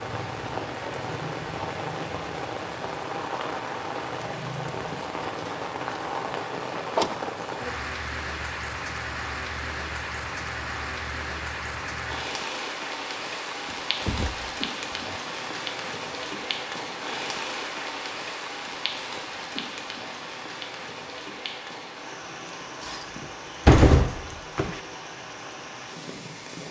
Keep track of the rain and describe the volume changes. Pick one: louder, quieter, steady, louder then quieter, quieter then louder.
quieter.